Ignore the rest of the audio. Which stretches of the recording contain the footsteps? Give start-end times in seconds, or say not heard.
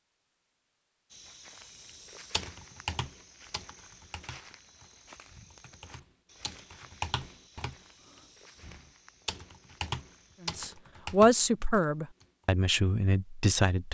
1.1-10.7.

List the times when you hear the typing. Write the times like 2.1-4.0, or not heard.
2.3-12.2.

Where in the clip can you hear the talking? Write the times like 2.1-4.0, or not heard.
10.4-13.9.